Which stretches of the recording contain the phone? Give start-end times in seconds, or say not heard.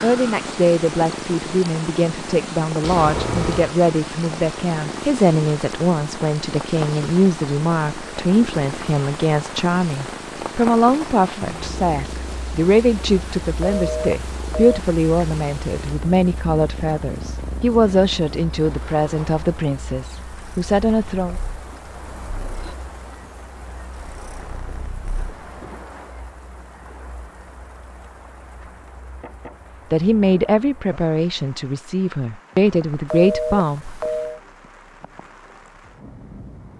2.8-3.8, 13.6-14.8, 33.1-34.4.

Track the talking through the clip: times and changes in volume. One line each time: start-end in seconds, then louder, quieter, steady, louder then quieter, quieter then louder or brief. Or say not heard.
0.0-21.4 steady
29.9-34.0 quieter then louder.